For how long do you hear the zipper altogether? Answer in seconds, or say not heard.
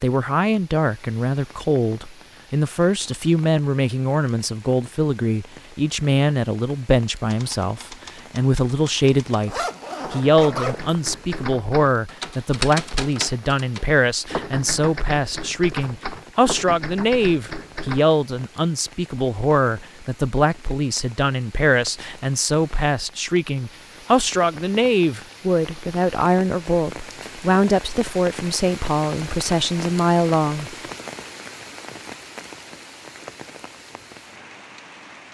2 s.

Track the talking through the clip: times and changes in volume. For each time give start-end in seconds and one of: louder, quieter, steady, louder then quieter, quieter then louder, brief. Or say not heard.
0.0-30.8 steady.